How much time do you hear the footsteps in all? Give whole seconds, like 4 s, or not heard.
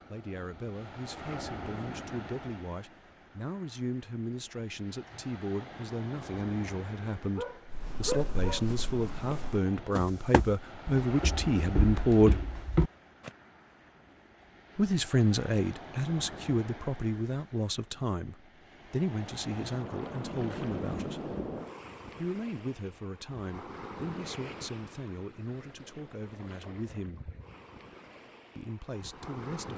6 s.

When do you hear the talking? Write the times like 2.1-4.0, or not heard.
0.1-12.4, 14.8-21.4, 22.1-27.2, 28.6-29.7.